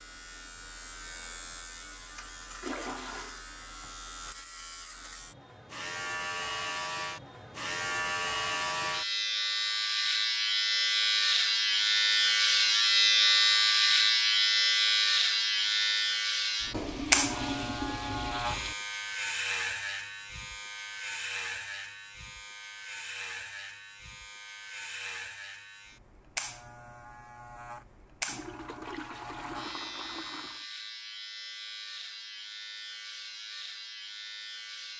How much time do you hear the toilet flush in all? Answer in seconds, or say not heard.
5 s.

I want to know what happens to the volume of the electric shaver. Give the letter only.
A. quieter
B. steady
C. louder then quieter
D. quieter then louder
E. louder
C.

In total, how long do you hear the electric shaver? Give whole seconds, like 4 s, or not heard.
35 s.